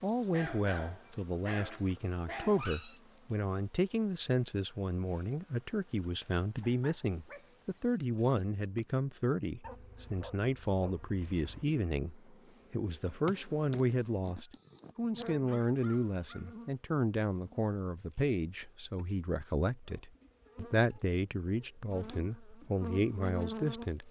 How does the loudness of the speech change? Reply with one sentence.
The volume of the speech stays about the same.